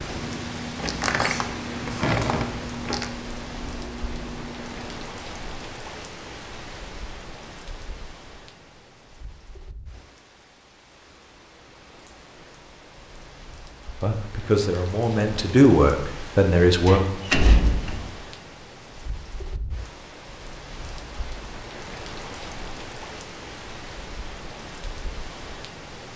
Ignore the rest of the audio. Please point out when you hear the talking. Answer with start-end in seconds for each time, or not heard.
14.0-17.0.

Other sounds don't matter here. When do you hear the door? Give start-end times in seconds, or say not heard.
0.8-3.0, 16.9-18.1.